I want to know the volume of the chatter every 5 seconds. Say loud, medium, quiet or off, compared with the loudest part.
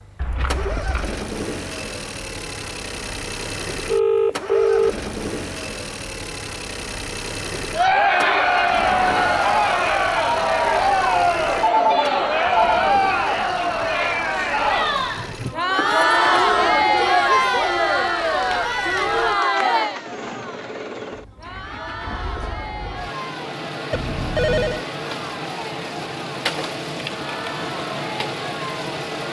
off, loud, loud, loud, quiet, quiet.